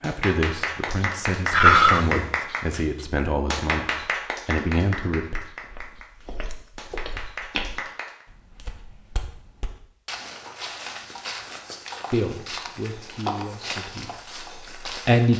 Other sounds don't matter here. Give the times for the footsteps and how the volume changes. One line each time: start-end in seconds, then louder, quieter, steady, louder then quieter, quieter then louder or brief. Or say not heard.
5.6-15.3 quieter then louder.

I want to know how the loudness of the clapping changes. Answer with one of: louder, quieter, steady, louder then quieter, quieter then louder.
quieter.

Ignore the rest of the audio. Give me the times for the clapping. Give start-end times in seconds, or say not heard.
0.0-8.2.